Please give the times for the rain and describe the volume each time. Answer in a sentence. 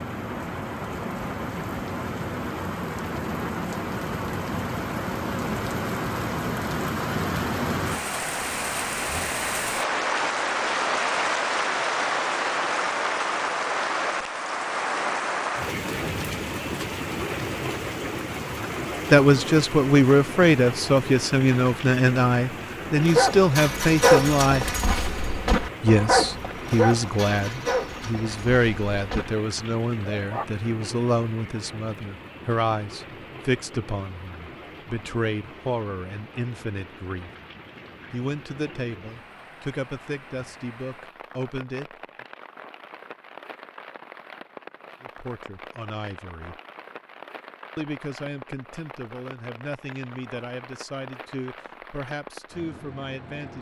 You can hear the rain from 0.0 to 53.5 s, getting quieter.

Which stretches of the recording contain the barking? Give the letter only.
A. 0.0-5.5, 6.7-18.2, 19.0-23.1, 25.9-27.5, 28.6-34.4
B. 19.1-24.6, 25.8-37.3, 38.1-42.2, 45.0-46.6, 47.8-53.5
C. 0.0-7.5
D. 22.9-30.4
D.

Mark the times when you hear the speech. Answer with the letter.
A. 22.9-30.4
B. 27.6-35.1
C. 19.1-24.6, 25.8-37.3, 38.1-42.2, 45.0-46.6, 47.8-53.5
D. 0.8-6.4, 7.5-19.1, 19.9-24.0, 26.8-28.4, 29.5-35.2
C.